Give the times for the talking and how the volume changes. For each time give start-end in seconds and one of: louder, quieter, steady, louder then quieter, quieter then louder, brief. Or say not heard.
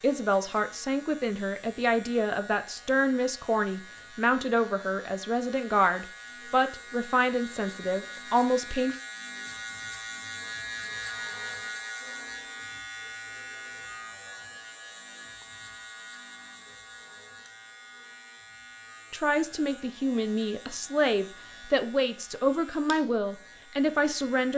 0.0-8.9 steady
19.1-24.5 steady.